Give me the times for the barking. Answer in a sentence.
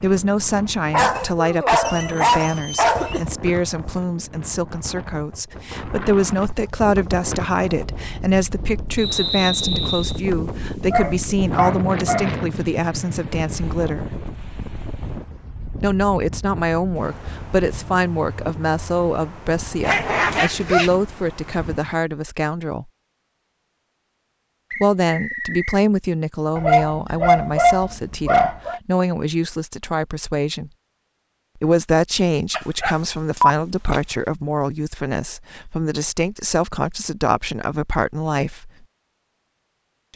The barking can be heard from 0.9 to 3.4 s, from 10.9 to 12.3 s, from 19.8 to 20.9 s, from 26.6 to 28.8 s and from 32.5 to 34.0 s.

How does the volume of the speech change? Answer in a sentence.
The loudness of the speech stays about the same.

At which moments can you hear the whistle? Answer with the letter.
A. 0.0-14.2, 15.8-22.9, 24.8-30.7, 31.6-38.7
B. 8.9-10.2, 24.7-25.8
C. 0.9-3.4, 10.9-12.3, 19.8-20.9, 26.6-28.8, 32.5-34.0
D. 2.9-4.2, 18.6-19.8
B.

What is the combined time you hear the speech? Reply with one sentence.
The speech can be heard for 34 seconds in total.